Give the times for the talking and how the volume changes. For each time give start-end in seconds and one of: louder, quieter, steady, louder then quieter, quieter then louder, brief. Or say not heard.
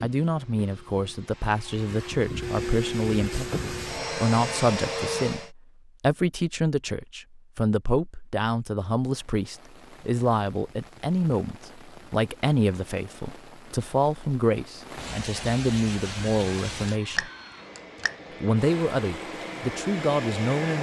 0.0-17.3 steady
18.4-20.7 brief.